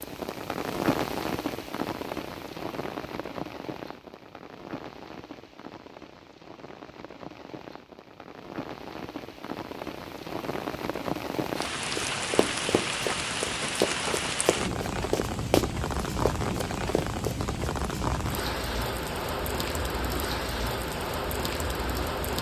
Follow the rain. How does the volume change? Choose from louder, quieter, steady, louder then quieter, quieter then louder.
quieter then louder.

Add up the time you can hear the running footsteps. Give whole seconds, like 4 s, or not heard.
6 s.